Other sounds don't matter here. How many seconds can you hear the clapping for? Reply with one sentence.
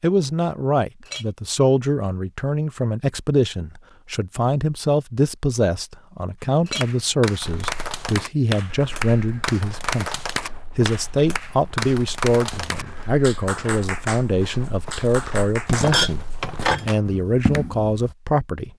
The clapping can be heard for 11 seconds in total.